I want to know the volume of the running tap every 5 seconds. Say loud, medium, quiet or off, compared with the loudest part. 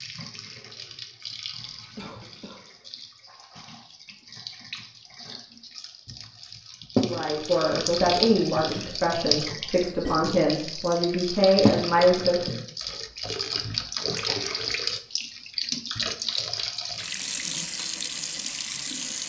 quiet, loud, loud, loud.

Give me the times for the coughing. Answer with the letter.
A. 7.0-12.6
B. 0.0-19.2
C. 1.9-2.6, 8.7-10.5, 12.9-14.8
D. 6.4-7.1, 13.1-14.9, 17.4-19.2
C.